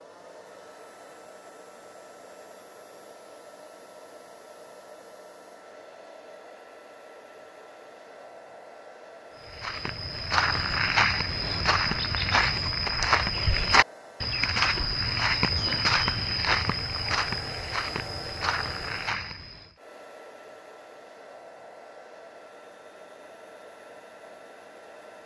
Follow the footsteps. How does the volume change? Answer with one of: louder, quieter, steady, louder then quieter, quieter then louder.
quieter.